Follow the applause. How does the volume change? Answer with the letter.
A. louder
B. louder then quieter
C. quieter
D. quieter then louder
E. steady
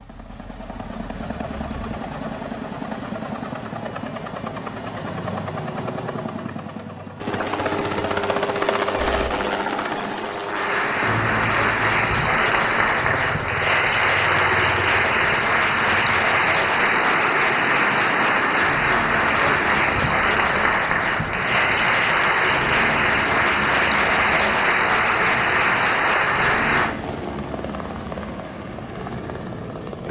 E.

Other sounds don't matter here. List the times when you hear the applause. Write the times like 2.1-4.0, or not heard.
10.5-26.9.